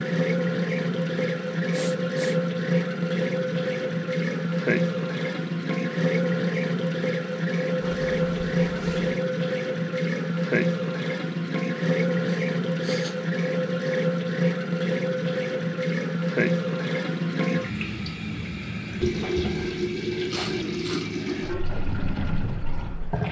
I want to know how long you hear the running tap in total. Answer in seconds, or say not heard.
23 s.